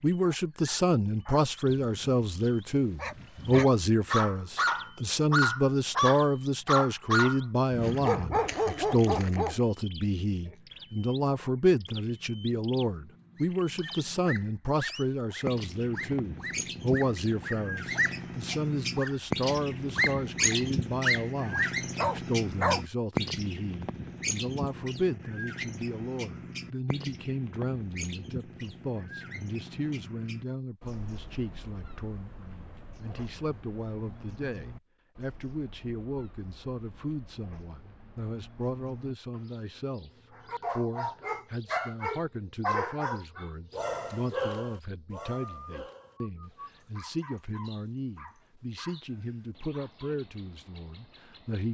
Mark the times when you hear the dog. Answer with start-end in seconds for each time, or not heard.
0.2-9.6, 13.3-22.8, 40.4-50.1.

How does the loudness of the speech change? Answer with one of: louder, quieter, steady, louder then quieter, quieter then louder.
quieter.